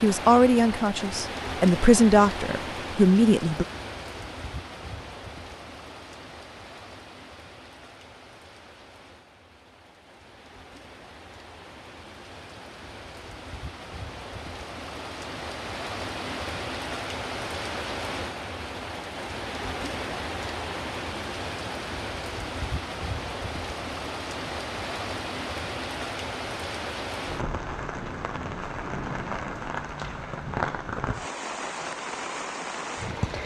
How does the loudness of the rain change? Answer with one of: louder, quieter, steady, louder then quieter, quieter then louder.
quieter then louder.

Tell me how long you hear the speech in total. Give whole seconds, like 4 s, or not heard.
4 s.